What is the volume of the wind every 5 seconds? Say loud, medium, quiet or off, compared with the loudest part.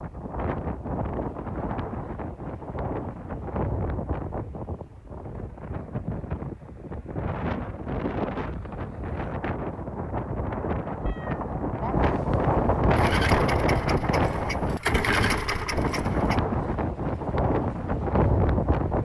medium, medium, loud, loud.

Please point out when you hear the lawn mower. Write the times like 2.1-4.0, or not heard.
12.9-16.4.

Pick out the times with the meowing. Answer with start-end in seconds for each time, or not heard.
11.1-11.9.